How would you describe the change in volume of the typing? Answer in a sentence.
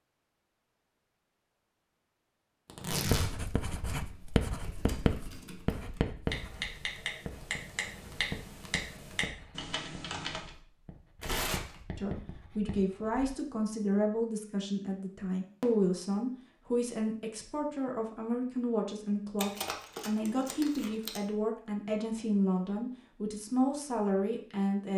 The volume of the typing goes up.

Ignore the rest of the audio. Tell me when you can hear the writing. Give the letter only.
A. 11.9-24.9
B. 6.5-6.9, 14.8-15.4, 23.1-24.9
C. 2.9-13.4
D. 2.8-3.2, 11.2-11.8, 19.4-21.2
C.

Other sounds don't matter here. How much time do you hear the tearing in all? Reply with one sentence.
You can hear the tearing for 3 seconds altogether.